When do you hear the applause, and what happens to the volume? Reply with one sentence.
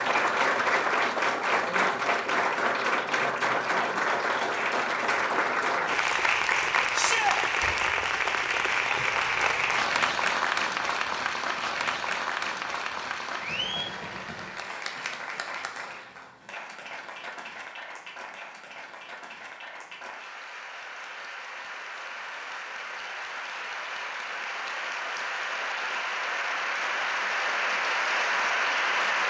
You can hear the applause from 0.0 to 29.2 s, getting quieter then louder.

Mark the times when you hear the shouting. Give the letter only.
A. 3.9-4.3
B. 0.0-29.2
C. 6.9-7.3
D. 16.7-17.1
C.